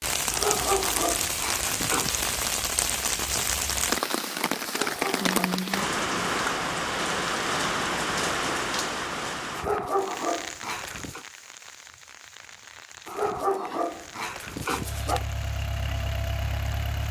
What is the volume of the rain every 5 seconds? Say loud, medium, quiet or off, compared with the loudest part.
loud, loud, quiet, quiet.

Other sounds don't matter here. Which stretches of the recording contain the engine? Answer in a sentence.
You can hear the engine from 14.7 to 17.0 s.